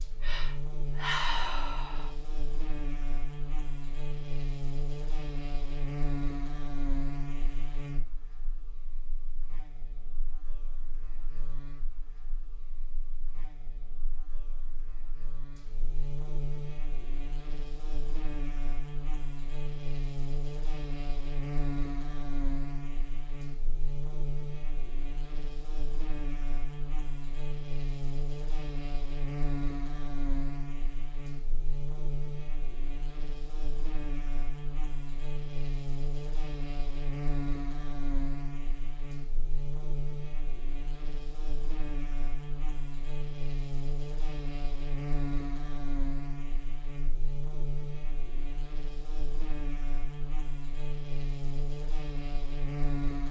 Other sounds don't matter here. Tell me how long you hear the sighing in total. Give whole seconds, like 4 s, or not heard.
2 s.